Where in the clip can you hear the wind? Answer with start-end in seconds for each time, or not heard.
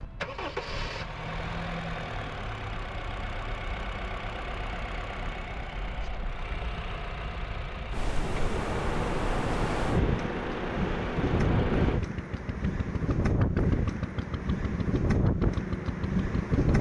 7.9-16.7.